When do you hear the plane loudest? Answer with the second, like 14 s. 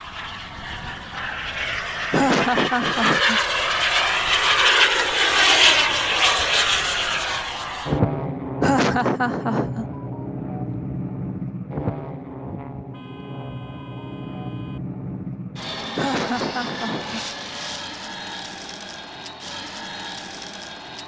5 s.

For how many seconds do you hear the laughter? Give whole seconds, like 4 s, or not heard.
4 s.